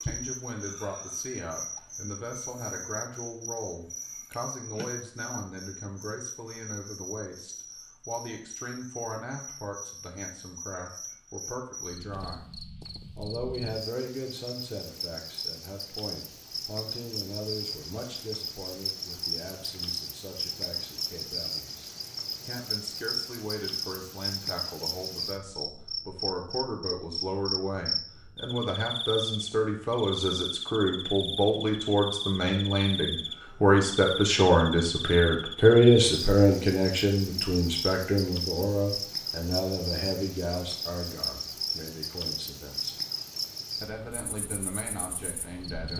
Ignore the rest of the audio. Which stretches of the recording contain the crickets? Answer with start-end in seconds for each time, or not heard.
0.0-45.9.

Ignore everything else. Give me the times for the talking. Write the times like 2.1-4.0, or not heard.
0.0-12.4, 13.2-43.0, 43.8-45.9.